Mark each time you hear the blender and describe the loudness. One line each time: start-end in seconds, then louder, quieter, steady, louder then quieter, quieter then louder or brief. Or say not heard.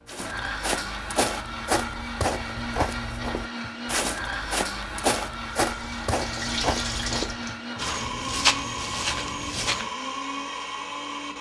0.0-11.3 steady.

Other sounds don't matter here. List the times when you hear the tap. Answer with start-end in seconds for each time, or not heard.
5.7-7.6.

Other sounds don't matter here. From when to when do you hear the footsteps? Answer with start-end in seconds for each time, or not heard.
0.1-9.9.